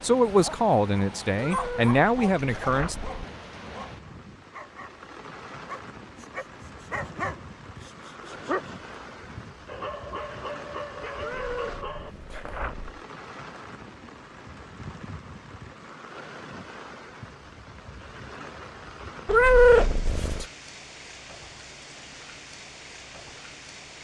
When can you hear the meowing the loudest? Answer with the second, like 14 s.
20 s.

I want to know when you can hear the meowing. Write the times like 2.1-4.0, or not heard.
1.4-3.2, 11.2-13.0, 19.2-20.4.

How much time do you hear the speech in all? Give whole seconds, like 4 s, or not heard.
3 s.